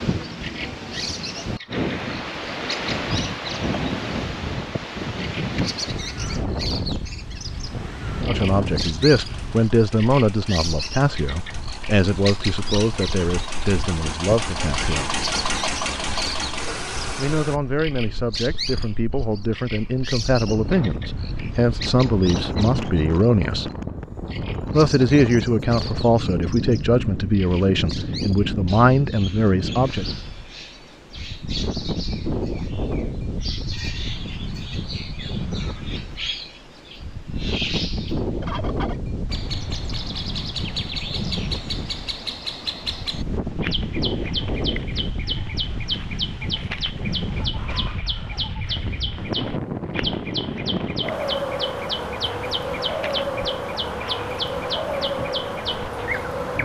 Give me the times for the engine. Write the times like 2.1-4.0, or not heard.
8.4-17.6.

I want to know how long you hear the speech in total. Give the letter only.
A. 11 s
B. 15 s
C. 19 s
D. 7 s
C.